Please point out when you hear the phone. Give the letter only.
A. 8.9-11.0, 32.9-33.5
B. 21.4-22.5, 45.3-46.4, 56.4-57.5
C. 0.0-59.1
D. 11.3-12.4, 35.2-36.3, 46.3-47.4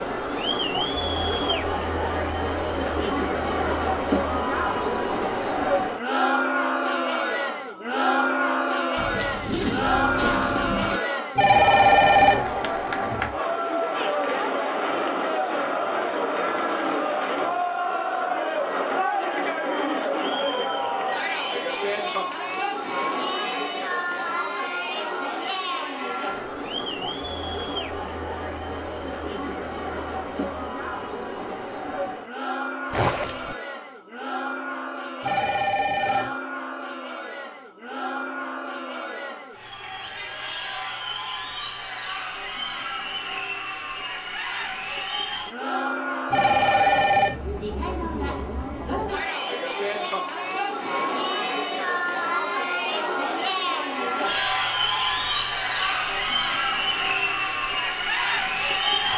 D.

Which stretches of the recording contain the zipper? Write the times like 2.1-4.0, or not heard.
8.9-11.0, 32.9-33.5.